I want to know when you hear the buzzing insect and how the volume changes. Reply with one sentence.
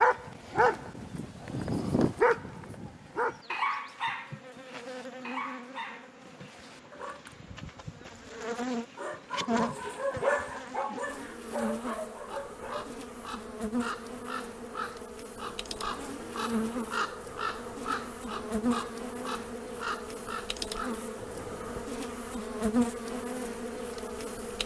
The buzzing insect can be heard from 0.0 to 24.6 s, getting louder.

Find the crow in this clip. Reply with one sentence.
You can hear the crow from 11.8 to 21.9 s.